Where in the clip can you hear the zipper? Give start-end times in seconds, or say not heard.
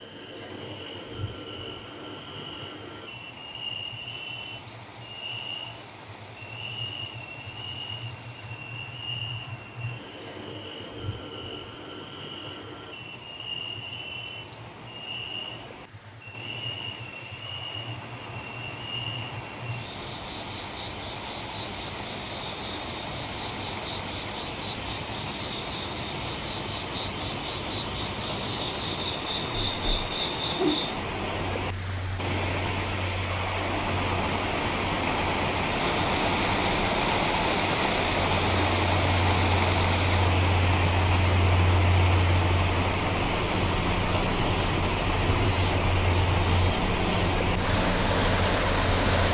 not heard.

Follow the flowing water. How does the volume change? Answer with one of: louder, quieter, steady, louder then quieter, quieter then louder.
louder.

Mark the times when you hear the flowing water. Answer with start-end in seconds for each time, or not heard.
0.0-49.2.